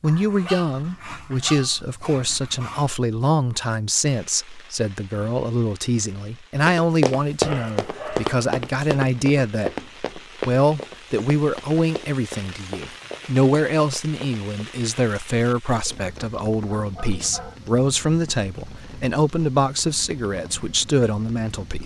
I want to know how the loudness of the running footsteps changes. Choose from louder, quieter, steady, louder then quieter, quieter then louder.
quieter.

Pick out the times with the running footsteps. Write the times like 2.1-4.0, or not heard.
6.7-14.8.